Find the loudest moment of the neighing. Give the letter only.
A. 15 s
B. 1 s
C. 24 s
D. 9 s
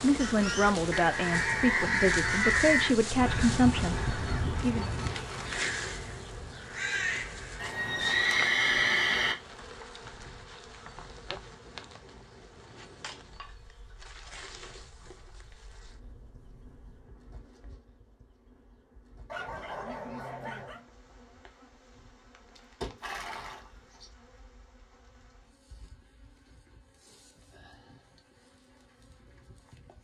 D.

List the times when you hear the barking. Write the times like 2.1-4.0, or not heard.
19.2-20.9.